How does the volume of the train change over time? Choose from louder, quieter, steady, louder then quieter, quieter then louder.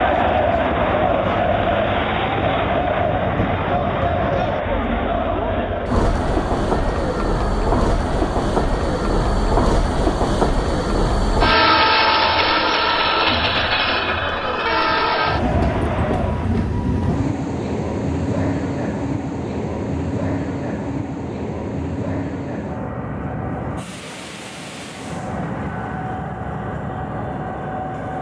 louder then quieter.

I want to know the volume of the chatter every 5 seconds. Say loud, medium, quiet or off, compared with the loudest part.
loud, medium, medium, medium, off, off.